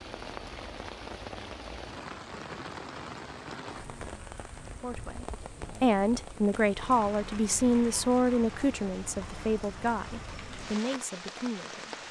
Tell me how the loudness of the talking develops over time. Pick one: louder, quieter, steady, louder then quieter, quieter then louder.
quieter.